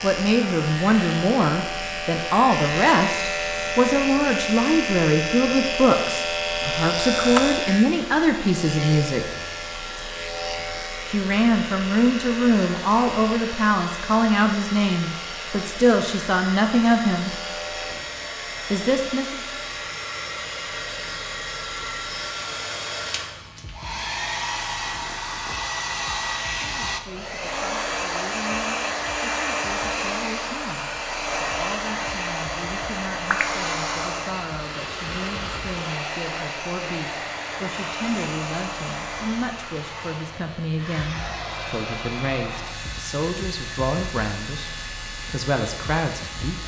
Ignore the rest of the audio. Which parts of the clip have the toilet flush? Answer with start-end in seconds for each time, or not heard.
not heard.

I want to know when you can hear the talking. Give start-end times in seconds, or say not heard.
0.0-9.2, 11.1-17.3, 18.7-19.4, 26.6-44.7, 45.3-46.6.